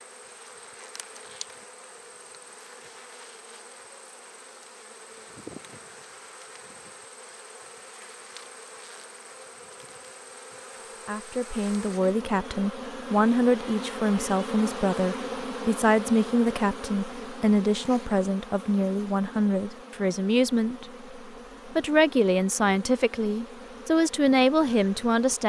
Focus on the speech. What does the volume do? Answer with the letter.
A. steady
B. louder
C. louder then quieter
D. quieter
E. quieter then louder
A.